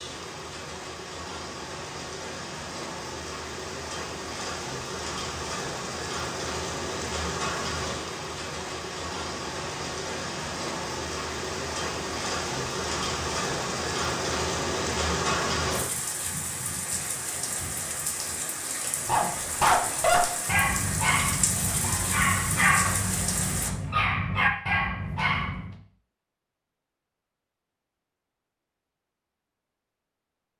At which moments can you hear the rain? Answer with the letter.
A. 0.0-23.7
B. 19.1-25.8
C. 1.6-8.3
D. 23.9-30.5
A.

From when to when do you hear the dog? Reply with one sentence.
The dog can be heard from 19.1 to 25.8 s.